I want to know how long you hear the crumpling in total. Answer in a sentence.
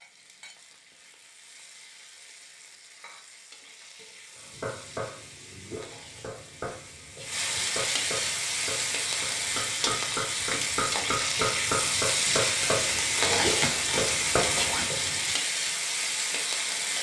The crumpling can be heard for 2 seconds in total.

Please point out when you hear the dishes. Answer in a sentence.
You can't hear the dishes here.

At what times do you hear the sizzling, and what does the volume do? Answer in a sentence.
The sizzling can be heard from 0.0 to 16.9 s, getting louder.